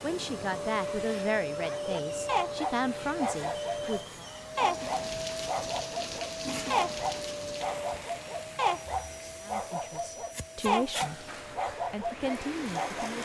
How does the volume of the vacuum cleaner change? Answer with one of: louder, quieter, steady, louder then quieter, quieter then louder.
quieter.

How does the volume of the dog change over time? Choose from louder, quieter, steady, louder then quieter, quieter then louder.
steady.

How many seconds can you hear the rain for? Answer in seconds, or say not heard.
9 s.